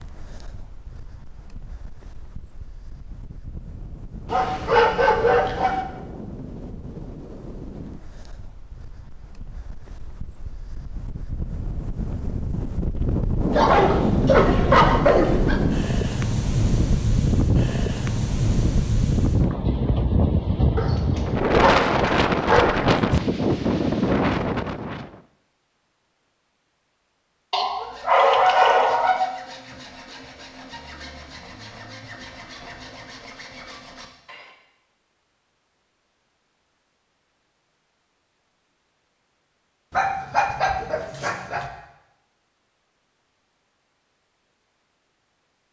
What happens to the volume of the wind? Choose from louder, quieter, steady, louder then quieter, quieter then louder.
louder.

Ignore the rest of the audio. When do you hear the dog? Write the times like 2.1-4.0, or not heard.
4.3-5.8, 13.5-15.6, 20.8-22.8, 27.5-29.3, 39.9-41.7.